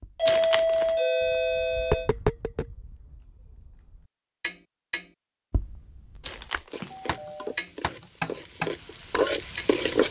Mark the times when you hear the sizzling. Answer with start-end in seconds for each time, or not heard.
6.7-10.0.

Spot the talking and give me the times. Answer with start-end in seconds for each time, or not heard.
not heard.